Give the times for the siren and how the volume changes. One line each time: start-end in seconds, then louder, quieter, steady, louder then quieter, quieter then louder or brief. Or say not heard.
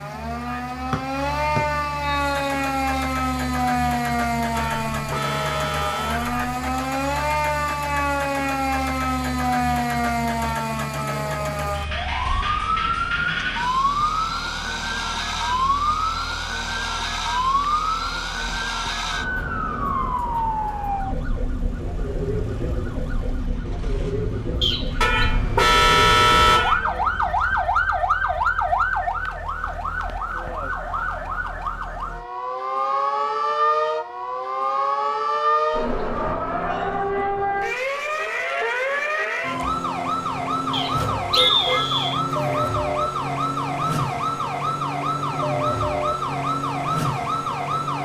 0.0-48.0 steady.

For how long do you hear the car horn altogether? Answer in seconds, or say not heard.
5 s.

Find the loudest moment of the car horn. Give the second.
26 s.